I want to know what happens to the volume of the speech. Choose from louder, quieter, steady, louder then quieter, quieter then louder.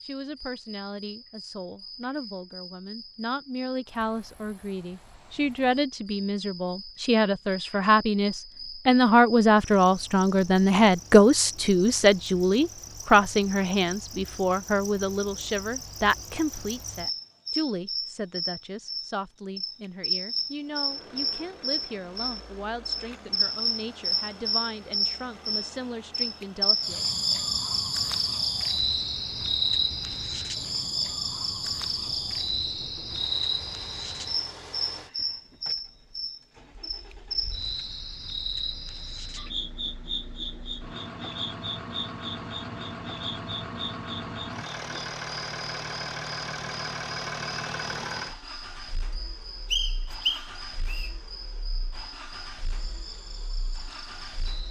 louder then quieter.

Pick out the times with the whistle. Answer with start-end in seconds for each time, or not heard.
49.7-51.1.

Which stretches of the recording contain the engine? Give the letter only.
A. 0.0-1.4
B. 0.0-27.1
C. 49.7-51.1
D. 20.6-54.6
D.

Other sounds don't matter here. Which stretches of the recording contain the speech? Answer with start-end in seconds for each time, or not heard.
0.0-27.1.